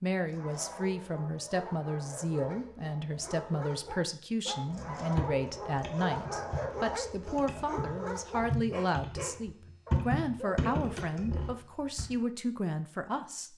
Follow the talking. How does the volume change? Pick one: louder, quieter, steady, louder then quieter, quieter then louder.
steady.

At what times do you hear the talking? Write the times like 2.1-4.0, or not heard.
0.0-13.5.